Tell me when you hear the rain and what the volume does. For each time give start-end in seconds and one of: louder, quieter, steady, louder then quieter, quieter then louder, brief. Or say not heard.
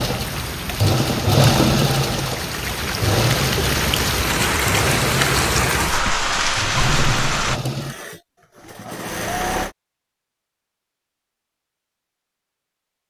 0.0-7.6 louder.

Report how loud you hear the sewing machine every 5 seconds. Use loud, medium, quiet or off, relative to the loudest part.
loud, medium, off.